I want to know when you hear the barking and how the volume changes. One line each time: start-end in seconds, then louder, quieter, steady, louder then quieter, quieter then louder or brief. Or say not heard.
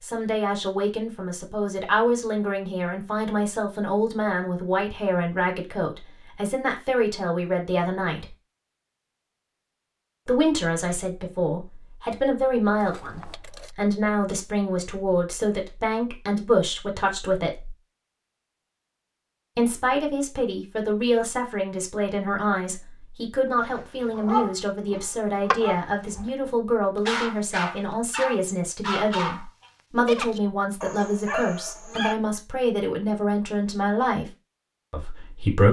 23.6-32.1 steady.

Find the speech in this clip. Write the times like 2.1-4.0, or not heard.
0.0-8.2, 10.2-17.8, 19.6-34.2, 34.9-35.6.